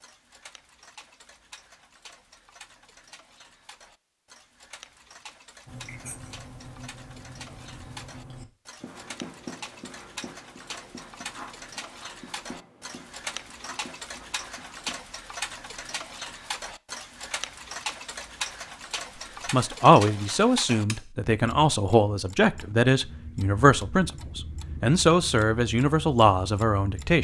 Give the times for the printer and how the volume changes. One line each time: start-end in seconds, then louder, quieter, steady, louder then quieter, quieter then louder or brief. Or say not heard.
not heard.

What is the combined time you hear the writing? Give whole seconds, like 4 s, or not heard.
9 s.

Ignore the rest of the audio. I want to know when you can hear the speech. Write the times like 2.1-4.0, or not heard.
19.5-27.1.